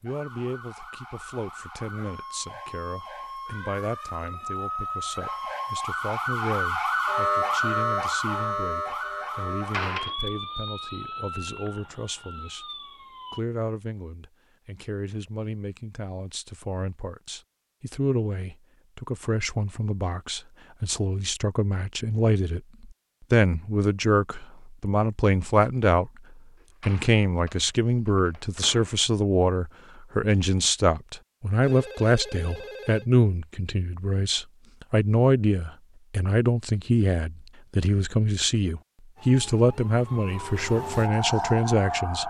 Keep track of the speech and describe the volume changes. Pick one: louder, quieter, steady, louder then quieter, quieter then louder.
louder.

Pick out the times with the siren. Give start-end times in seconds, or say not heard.
0.1-13.4, 39.1-42.2.